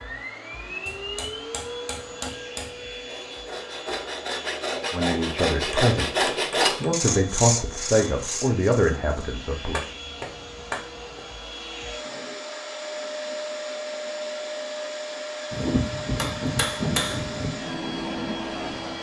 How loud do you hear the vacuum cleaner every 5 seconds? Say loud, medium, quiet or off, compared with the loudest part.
loud, medium, loud, loud.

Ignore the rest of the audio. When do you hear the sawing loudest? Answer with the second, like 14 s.
7 s.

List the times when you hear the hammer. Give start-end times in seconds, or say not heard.
0.8-2.7, 5.7-7.2, 9.7-11.2, 15.5-17.5.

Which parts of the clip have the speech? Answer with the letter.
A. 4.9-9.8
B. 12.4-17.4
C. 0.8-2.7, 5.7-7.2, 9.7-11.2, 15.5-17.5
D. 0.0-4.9
A.